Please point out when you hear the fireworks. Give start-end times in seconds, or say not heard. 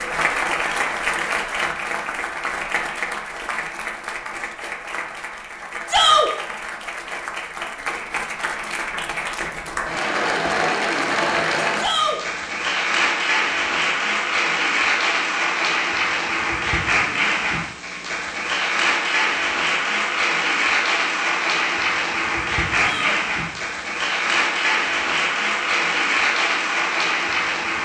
not heard.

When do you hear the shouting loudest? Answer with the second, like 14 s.
6 s.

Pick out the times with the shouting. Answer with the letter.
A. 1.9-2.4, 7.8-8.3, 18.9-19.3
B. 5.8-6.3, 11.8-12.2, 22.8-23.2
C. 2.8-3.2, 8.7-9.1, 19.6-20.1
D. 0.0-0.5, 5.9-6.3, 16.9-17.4
B.